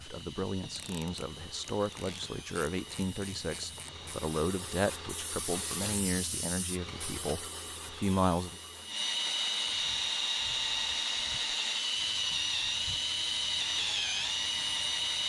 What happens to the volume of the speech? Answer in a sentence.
The loudness of the speech stays about the same.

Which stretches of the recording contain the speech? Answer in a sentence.
The speech can be heard from 0.0 to 8.6 s.